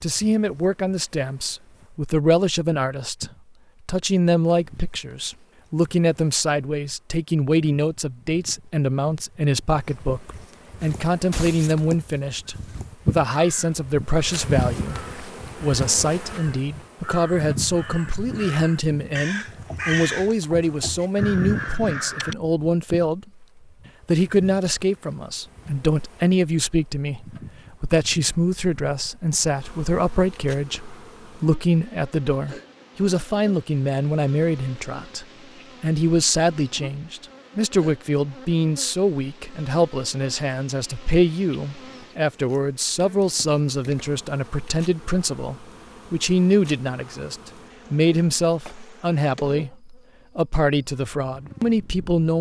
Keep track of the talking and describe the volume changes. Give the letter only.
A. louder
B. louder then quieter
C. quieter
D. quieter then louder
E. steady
E.